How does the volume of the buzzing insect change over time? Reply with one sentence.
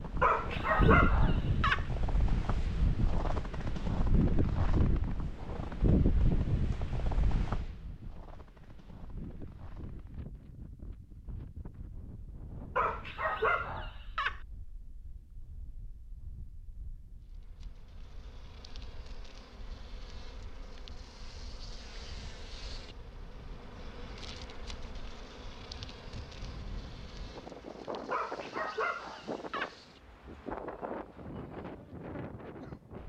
The volume of the buzzing insect goes up, then down.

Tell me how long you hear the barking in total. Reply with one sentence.
The barking can be heard for 5 seconds in total.